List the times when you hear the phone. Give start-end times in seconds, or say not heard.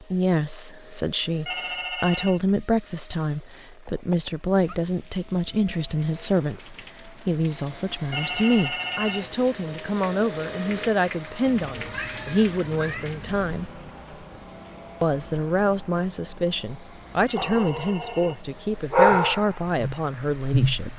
1.4-2.4, 8.1-9.3, 17.2-18.4.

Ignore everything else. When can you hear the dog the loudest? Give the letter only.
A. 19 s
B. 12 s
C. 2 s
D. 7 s
A.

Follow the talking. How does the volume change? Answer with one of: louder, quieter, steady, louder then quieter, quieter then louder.
steady.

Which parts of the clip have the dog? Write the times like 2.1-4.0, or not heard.
17.4-20.9.